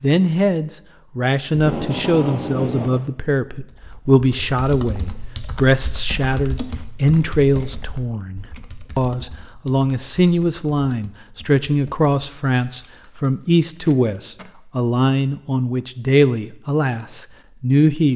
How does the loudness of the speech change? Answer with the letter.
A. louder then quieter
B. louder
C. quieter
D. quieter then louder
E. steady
E.